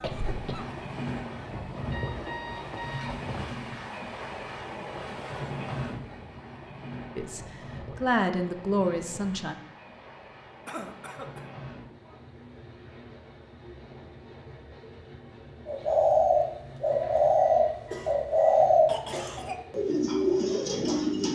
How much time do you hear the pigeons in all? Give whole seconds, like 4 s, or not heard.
6 s.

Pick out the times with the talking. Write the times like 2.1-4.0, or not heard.
7.2-9.6.